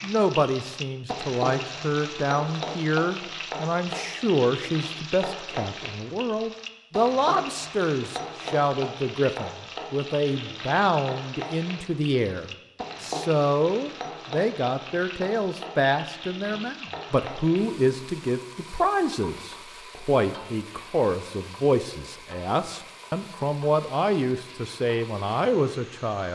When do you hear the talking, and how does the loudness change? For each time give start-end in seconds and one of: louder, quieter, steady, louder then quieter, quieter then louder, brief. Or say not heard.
0.0-26.2 steady.